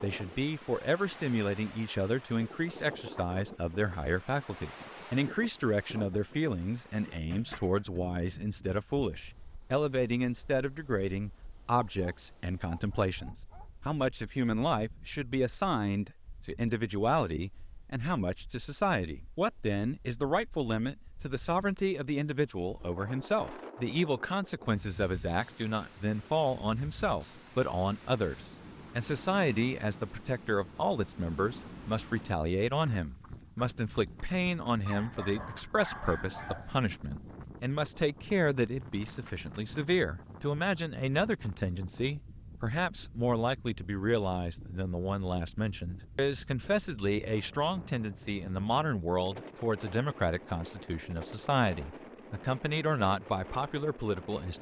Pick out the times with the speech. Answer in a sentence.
You can hear the speech from 0.0 to 54.5 s.